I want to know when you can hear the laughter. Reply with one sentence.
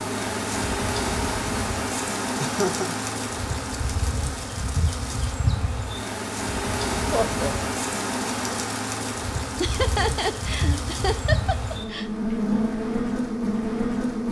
You can hear the laughter from 2.4 to 3.0 s, from 7.1 to 7.5 s and from 9.6 to 12.1 s.